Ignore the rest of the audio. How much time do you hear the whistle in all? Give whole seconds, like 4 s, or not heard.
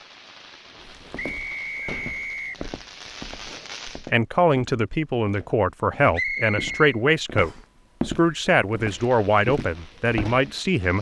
3 s.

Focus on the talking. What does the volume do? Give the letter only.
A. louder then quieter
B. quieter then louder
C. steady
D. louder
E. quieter
C.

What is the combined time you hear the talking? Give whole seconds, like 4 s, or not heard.
7 s.